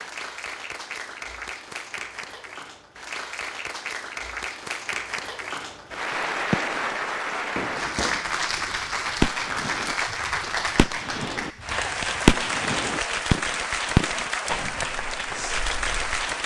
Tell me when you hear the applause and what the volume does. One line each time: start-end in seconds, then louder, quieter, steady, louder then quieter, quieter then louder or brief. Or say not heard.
0.0-16.4 louder.